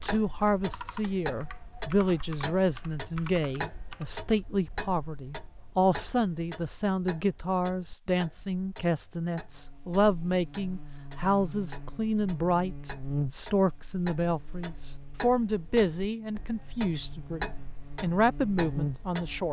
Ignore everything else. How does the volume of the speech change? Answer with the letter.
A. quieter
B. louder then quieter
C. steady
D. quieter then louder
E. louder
C.